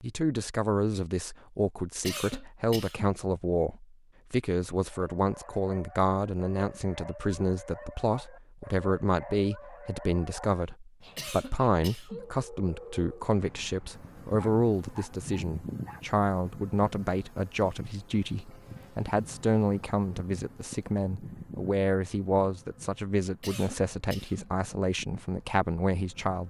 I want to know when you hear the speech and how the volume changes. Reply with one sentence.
The speech can be heard from 0.0 to 26.4 s, at a steady volume.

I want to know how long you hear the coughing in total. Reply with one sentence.
The coughing can be heard for 3 seconds in total.